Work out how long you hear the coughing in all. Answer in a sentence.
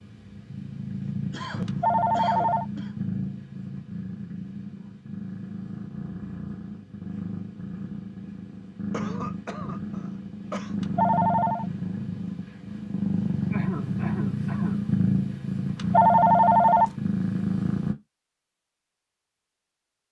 The coughing can be heard for 5 seconds in total.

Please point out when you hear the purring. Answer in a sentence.
The purring can be heard from 0.0 to 17.9 s.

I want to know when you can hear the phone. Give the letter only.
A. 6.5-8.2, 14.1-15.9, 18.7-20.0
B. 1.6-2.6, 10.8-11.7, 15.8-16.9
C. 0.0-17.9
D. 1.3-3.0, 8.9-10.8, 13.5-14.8
B.